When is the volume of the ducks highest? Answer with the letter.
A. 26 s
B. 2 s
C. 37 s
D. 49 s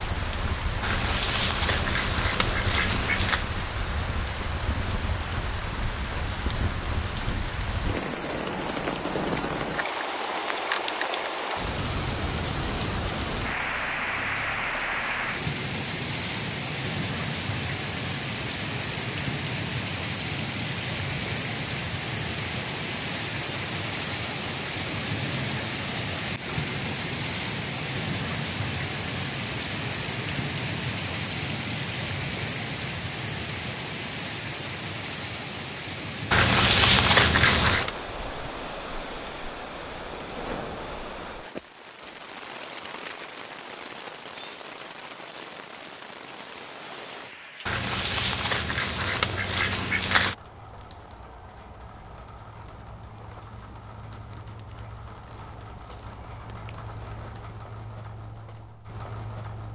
C.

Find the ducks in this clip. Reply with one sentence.
You can hear the ducks from 0.8 to 3.5 s, from 36.3 to 37.9 s and from 47.6 to 50.4 s.